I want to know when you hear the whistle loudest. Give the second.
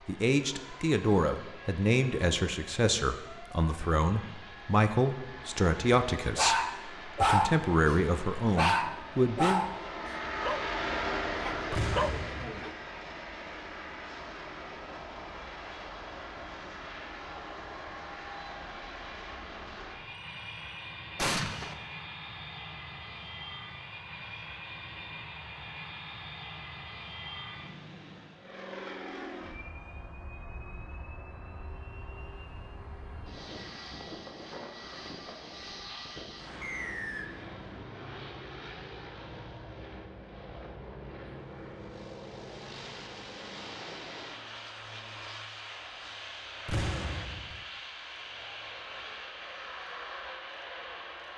37 s.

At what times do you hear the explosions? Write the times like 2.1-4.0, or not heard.
11.7-12.5, 21.1-21.8, 46.6-47.6.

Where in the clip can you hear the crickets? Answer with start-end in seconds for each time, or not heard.
not heard.